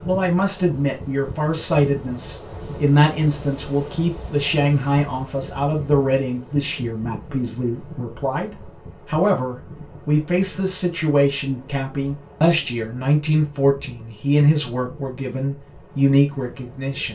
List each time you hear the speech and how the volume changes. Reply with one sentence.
You can hear the speech from 0.1 to 17.1 s, at a steady volume.